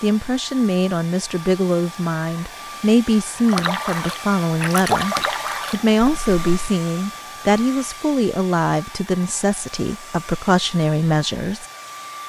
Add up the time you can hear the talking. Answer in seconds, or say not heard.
12 s.